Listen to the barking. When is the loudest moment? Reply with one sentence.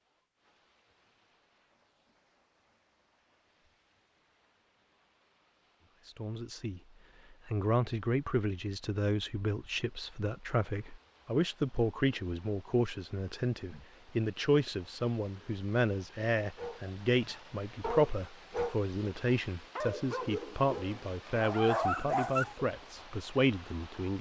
The volume of the barking peaks at 22 seconds.